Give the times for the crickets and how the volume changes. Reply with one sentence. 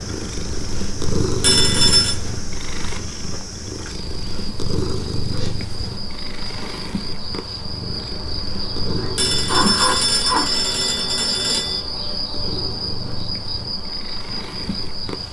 You can hear the crickets from 0.0 to 15.2 s, getting louder.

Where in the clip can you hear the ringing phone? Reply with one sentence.
You can hear the ringing phone from 1.4 to 2.1 s and from 9.2 to 11.8 s.